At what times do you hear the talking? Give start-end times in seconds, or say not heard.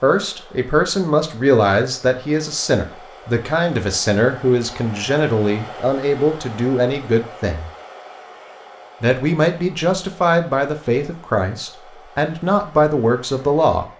0.0-7.7, 9.0-13.8.